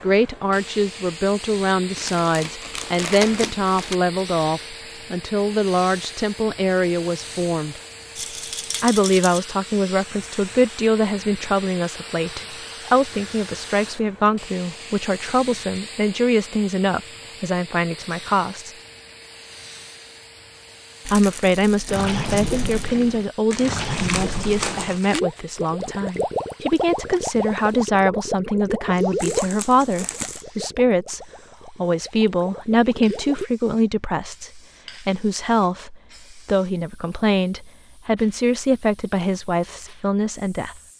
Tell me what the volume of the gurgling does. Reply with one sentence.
The loudness of the gurgling goes down.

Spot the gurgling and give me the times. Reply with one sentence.
The gurgling can be heard from 21.9 to 33.5 s.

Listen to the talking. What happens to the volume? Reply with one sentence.
The volume of the talking stays about the same.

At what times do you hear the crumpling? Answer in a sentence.
You can hear the crumpling from 1.9 to 4.0 s, from 23.5 to 25.2 s and from 29.1 to 30.4 s.